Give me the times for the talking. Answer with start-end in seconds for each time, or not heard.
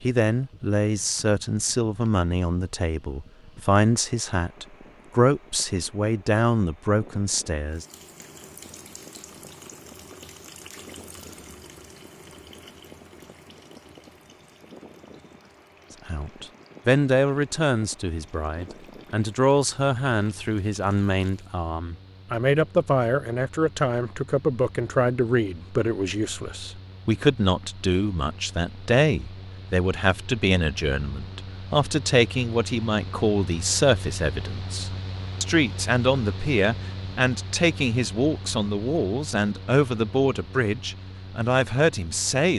0.0-7.8, 16.1-42.5.